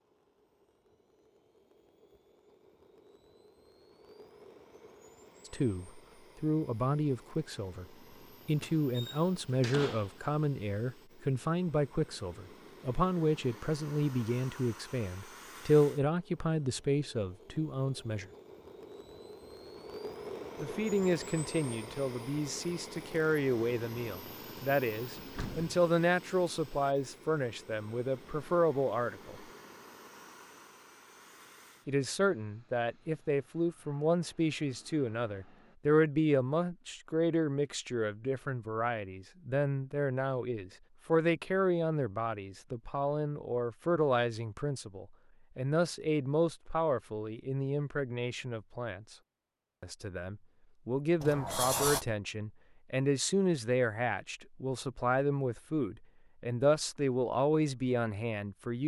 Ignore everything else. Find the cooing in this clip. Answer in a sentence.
The cooing can't be heard in this clip.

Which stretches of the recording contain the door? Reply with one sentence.
The door can be heard from 8.6 to 10.2 s, from 25.1 to 25.8 s and from 51.2 to 52.0 s.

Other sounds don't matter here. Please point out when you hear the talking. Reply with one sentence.
You can hear the talking from 5.5 to 7.8 s, from 8.4 to 18.3 s, from 20.6 to 29.4 s, from 31.9 to 49.1 s and from 49.8 to 58.8 s.